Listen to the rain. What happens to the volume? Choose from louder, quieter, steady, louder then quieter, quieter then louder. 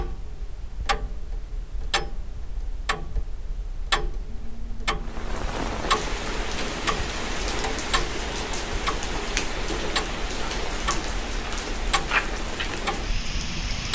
steady.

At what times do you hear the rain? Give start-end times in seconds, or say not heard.
5.0-13.9.